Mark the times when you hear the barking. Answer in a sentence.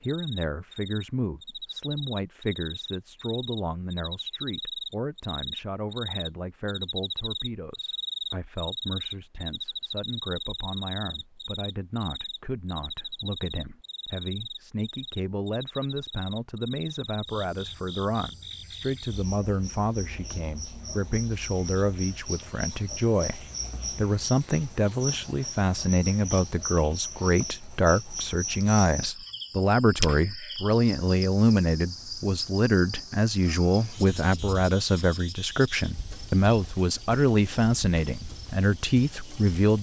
The barking can't be heard in this clip.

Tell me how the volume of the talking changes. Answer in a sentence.
The loudness of the talking goes up.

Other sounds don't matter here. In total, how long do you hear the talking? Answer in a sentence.
You can hear the talking for 40 seconds altogether.